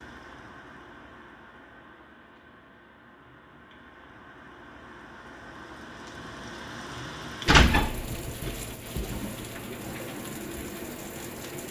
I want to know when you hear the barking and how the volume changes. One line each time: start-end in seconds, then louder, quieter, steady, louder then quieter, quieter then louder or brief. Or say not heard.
not heard.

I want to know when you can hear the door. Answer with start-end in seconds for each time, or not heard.
7.5-9.3.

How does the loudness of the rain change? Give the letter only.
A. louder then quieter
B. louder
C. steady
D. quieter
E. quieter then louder
B.